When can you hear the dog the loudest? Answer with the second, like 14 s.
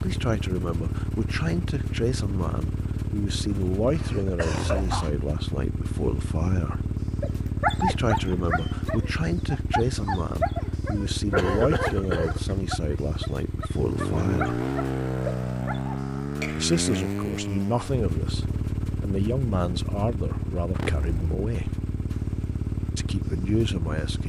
8 s.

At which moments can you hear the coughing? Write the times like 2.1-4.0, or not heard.
3.5-5.1, 11.3-12.6, 16.4-16.8.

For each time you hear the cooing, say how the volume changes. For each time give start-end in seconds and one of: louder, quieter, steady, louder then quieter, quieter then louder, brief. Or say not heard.
not heard.